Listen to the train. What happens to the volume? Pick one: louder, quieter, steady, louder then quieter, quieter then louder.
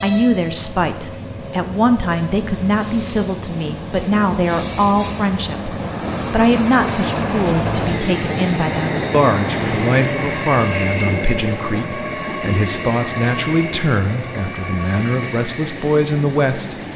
louder then quieter.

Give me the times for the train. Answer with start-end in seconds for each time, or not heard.
0.0-16.9.